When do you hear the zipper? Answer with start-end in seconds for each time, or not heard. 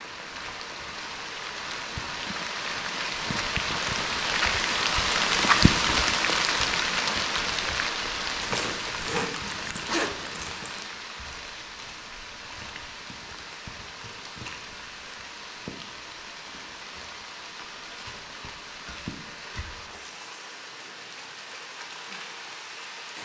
8.3-10.8.